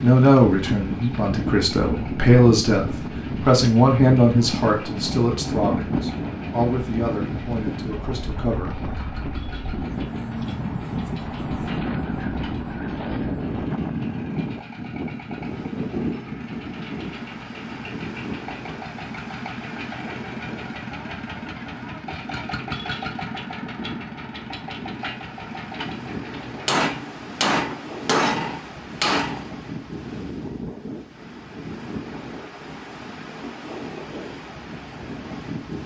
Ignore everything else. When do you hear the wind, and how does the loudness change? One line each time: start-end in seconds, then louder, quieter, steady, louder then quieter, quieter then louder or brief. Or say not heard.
0.0-35.8 quieter.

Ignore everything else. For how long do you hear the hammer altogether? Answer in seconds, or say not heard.
3 s.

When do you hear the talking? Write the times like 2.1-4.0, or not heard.
0.0-8.8.